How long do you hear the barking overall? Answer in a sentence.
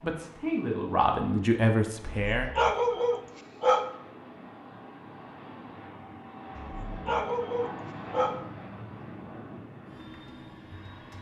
The barking can be heard for 4 seconds in total.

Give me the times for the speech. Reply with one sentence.
The speech can be heard from 0.0 to 2.5 s.